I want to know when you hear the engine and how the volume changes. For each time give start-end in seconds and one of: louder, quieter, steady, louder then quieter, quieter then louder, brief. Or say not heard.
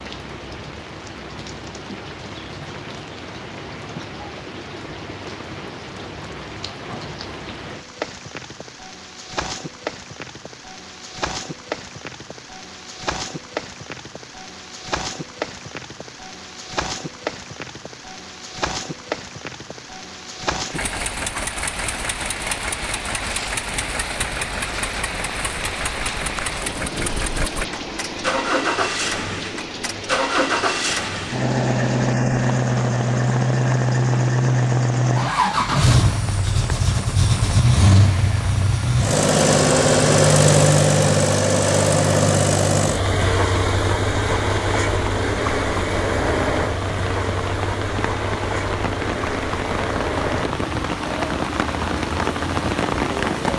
20.7-53.5 louder then quieter.